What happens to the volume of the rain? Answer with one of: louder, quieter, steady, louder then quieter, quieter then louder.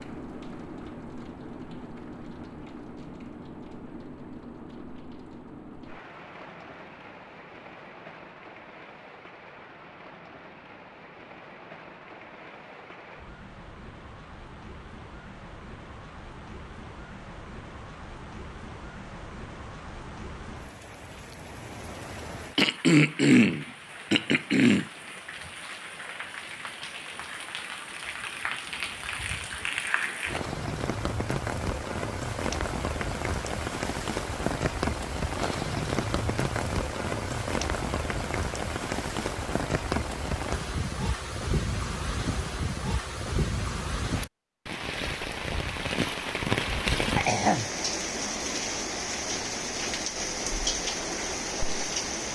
louder.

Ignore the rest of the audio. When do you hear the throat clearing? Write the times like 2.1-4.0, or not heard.
22.6-24.9.